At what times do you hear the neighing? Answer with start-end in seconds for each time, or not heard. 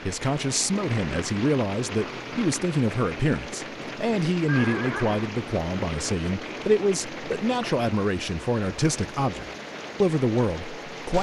4.5-5.4.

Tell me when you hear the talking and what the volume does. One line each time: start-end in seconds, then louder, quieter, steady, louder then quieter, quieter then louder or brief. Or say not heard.
0.1-11.1 steady.